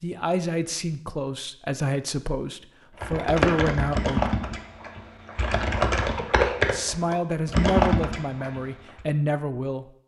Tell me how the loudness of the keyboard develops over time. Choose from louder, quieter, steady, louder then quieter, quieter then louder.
quieter then louder.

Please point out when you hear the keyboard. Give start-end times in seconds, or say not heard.
3.0-9.0.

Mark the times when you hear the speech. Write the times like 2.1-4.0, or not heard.
0.0-4.3, 6.7-9.9.